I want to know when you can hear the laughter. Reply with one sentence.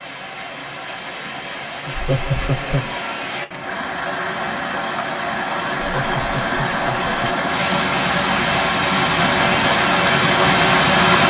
The laughter can be heard from 1.9 to 3.0 s and from 5.8 to 7.4 s.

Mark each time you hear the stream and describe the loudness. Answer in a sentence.
The stream can be heard from 0.0 to 11.2 s, getting louder.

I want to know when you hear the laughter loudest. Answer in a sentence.
The loudest moment of the laughter is at 2 seconds.